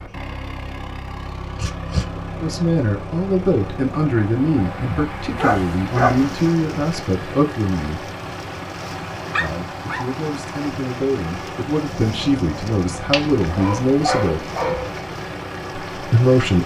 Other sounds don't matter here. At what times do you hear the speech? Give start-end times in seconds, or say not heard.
2.4-8.1, 9.3-14.4, 15.9-16.6.